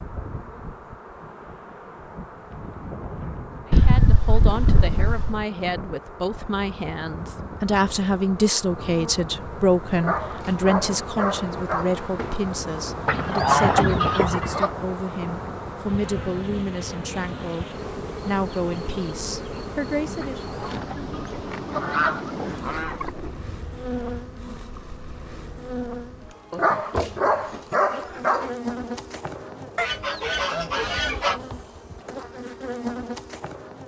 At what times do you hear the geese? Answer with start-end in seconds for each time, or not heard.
3.7-5.5, 13.1-14.7, 20.2-23.1, 29.8-31.4.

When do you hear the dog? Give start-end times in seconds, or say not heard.
9.9-12.4, 26.5-28.5.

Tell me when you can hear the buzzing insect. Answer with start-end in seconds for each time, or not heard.
0.0-33.8.